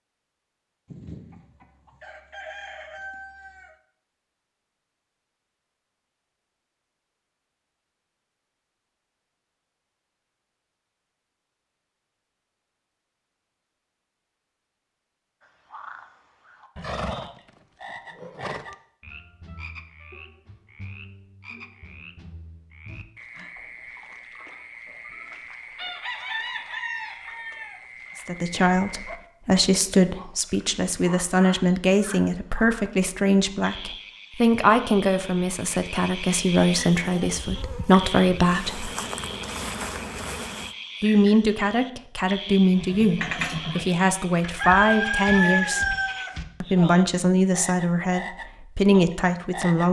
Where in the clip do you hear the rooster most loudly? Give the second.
45 s.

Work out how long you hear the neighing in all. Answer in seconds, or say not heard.
3 s.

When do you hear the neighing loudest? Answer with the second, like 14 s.
43 s.